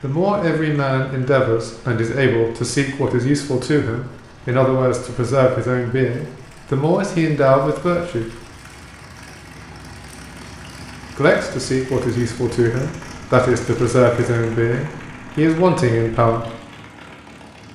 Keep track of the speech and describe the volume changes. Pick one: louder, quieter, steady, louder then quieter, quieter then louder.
steady.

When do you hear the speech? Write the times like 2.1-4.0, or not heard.
0.0-8.3, 11.2-16.4.